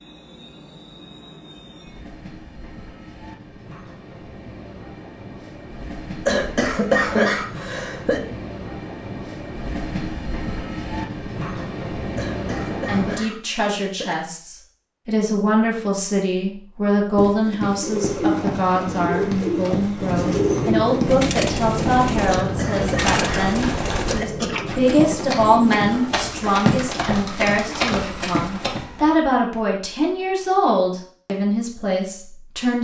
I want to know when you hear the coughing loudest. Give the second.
7 s.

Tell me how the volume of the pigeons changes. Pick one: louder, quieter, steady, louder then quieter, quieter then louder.
quieter.